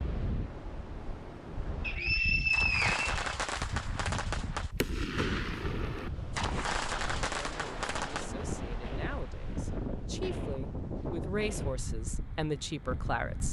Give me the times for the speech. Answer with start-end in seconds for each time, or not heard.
7.2-13.4.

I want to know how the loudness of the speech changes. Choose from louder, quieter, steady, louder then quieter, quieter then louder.
louder.